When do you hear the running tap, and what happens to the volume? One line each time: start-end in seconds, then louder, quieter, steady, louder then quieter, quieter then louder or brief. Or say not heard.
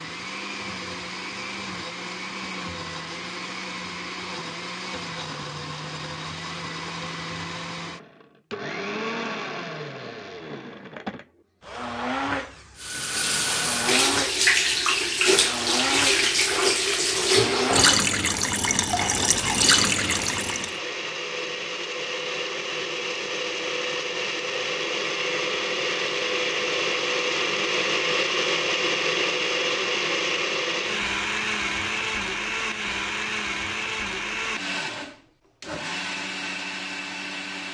12.8-20.8 steady.